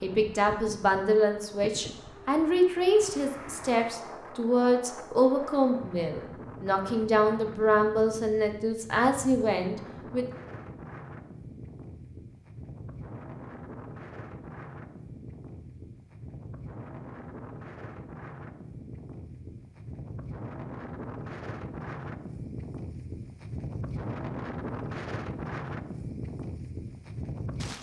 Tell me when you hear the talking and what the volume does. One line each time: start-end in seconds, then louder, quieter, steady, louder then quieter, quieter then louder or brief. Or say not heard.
0.0-10.2 steady.